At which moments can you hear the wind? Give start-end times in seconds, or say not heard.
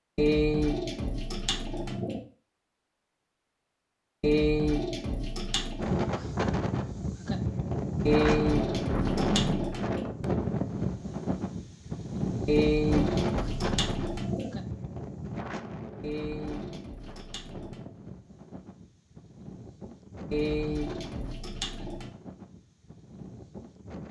5.8-24.0.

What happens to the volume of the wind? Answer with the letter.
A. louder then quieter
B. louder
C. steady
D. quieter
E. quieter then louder
D.